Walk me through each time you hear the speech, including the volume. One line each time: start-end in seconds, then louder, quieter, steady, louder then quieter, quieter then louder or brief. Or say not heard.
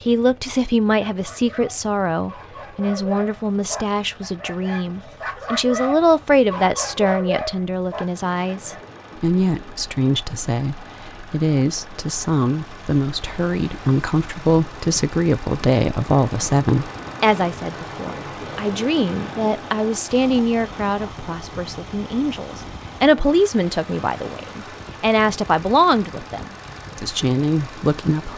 0.1-28.3 steady.